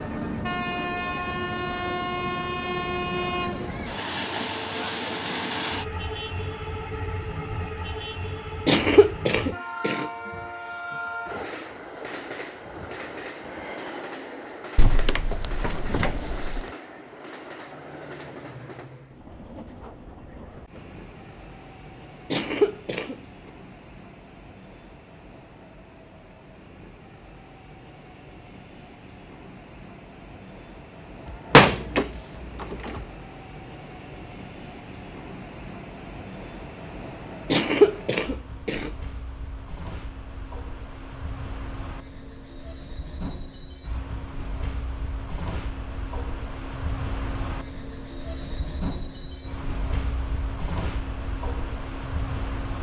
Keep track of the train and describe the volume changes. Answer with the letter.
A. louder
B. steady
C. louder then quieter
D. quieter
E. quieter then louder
E.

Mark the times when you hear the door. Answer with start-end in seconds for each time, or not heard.
14.8-16.6, 31.2-33.0.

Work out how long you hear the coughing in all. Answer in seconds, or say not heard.
4 s.